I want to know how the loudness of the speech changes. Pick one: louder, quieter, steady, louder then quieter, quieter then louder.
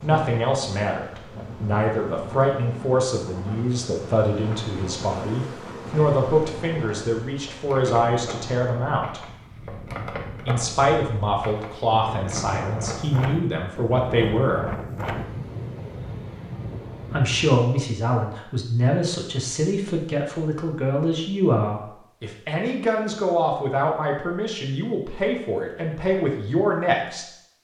steady.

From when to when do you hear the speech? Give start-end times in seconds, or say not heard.
0.0-9.2, 10.4-14.7, 17.1-27.2.